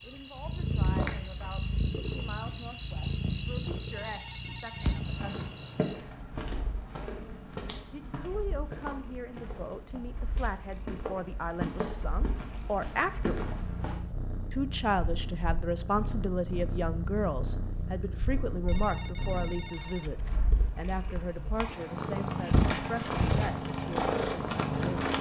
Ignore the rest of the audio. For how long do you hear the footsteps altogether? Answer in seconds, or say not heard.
9 s.